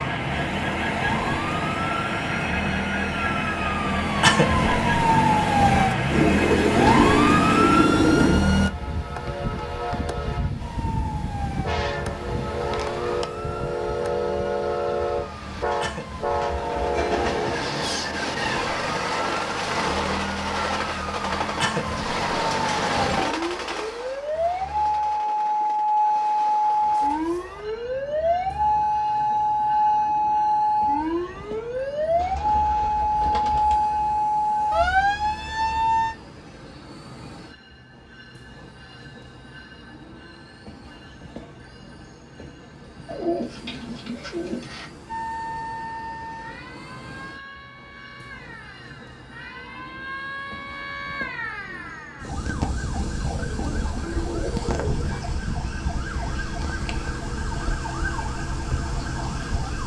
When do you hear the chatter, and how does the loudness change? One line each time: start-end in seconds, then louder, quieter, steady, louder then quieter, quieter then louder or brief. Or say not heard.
not heard.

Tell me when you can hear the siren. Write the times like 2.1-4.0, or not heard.
0.0-8.7, 10.6-36.1, 45.0-59.8.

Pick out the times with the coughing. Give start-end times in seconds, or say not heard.
not heard.